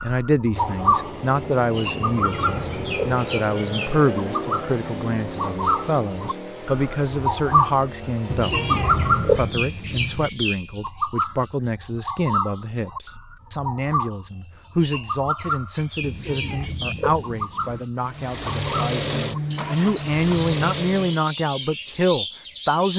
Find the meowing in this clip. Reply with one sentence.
The meowing can be heard from 2.0 to 3.2 s, from 8.2 to 10.3 s and from 16.0 to 17.9 s.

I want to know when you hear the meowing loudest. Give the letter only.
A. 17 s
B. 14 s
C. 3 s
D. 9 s
D.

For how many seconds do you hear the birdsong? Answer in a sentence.
The birdsong can be heard for 23 seconds in total.